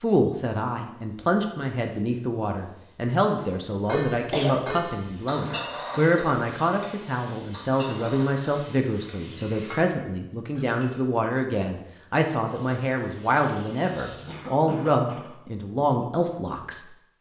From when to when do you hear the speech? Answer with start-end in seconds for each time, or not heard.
0.0-16.8.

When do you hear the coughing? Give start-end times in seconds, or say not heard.
3.4-4.6, 14.2-15.3.